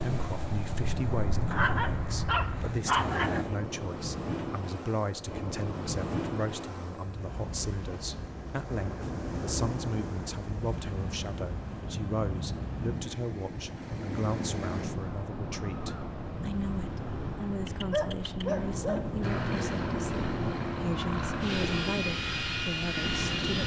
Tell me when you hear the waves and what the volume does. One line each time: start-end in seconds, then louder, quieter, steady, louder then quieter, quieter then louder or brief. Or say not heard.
0.0-23.6 steady.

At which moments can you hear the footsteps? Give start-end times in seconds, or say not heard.
not heard.